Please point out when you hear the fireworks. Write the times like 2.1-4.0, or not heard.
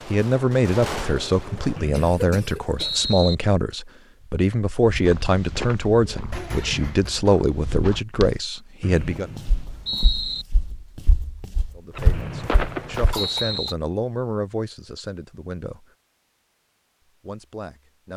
0.0-1.8, 11.9-13.6.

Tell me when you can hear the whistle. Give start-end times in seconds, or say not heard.
1.8-3.4, 8.8-10.4, 12.1-13.8.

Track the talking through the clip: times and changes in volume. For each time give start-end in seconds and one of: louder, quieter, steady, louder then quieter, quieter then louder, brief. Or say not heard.
0.1-9.3 steady
11.8-15.9 louder then quieter
17.1-18.1 brief.